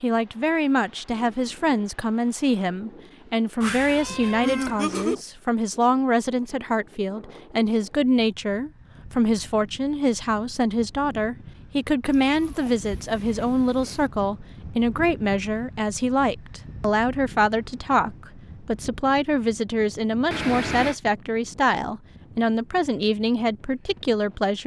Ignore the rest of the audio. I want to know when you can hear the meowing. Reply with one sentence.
The meowing can be heard from 3.6 to 5.2 s, from 12.1 to 14.1 s and from 20.3 to 20.9 s.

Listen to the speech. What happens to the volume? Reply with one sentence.
The loudness of the speech stays about the same.